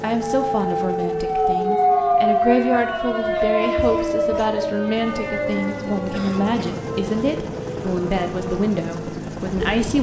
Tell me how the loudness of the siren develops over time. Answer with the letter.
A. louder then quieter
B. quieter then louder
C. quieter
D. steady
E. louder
C.